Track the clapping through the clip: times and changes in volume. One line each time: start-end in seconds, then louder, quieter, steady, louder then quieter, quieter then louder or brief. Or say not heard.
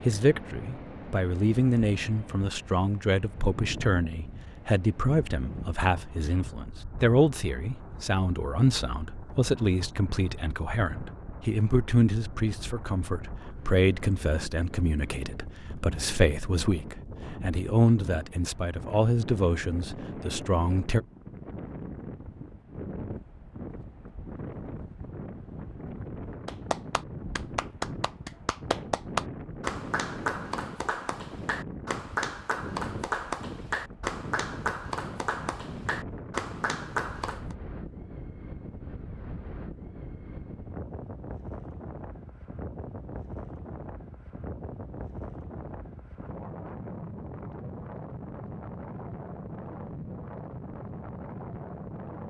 26.4-37.5 steady.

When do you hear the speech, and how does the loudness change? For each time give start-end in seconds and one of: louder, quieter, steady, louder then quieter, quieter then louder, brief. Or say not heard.
0.1-21.0 steady.